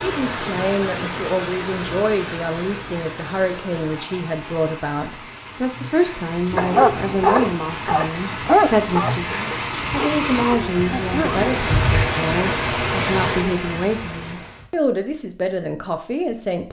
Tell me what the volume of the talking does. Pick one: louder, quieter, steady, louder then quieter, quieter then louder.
steady.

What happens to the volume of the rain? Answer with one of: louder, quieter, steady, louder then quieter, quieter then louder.
quieter then louder.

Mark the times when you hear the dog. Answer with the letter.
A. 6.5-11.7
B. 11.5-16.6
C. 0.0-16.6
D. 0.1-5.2
A.